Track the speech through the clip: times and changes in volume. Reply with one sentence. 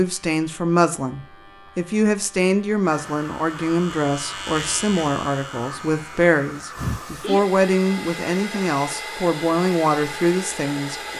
The speech can be heard from 0.0 to 11.0 s, at a steady volume.